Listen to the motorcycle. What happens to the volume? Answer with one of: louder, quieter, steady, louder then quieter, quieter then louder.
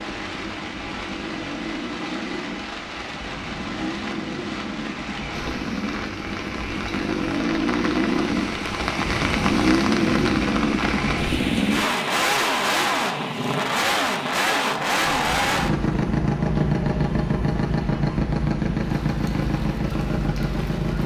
louder.